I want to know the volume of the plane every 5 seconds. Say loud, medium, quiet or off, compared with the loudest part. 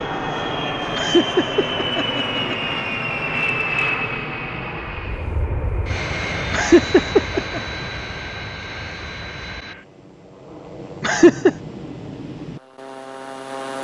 loud, medium, medium.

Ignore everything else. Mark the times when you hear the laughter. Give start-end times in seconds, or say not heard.
0.9-2.8, 6.5-7.6, 11.0-11.5.